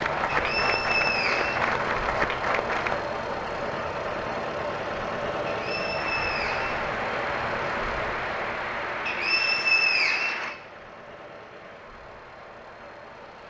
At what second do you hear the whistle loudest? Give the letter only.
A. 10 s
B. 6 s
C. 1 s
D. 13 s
A.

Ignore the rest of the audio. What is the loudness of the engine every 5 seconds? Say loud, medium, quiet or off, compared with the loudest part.
loud, loud, quiet.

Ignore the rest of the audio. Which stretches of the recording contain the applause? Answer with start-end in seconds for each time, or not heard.
0.0-3.0, 6.0-13.4.